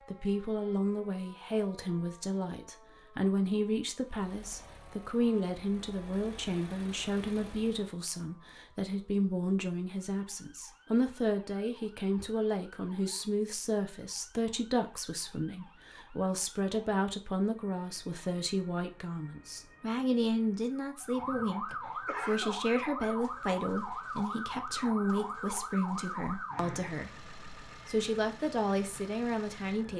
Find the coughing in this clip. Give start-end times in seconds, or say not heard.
21.0-22.6.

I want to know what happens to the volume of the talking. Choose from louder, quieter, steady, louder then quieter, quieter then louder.
steady.